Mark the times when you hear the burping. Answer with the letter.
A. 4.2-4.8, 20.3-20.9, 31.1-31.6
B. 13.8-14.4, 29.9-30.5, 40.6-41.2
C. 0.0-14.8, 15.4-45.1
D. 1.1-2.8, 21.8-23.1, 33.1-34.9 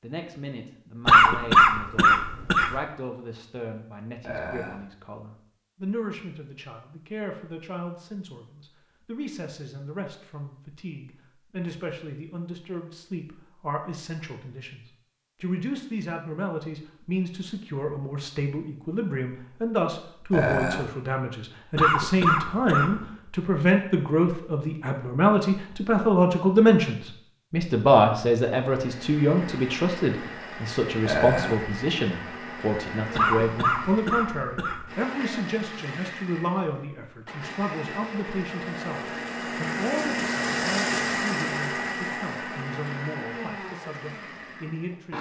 A.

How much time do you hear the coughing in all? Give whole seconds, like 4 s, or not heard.
5 s.